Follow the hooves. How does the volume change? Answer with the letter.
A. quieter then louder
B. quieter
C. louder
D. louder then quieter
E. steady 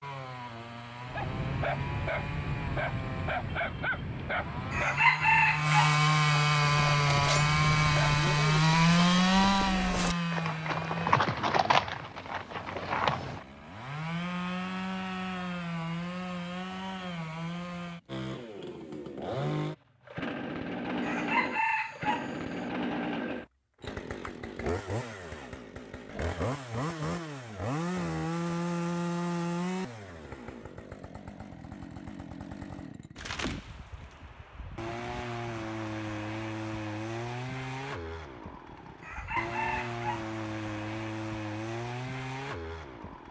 D.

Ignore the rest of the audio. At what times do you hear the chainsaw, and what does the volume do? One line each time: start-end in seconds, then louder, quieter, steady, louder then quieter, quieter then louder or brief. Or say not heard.
0.0-43.2 quieter.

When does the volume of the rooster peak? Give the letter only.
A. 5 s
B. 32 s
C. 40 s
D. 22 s
A.